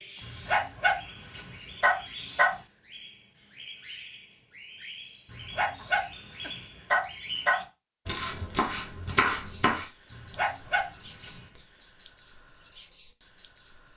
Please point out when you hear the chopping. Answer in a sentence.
You can hear the chopping from 8.1 to 9.8 s.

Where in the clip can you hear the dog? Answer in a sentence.
The dog can be heard from 0.2 to 2.5 s, from 5.3 to 7.6 s and from 10.1 to 11.4 s.